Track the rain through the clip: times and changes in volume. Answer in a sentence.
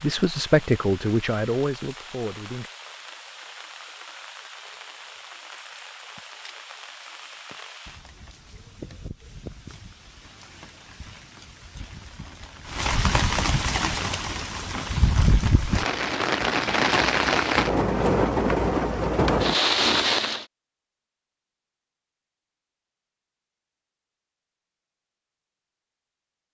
The rain can be heard from 0.0 to 20.4 s, getting louder.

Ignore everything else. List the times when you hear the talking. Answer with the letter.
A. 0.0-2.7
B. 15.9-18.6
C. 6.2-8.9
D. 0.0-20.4
A.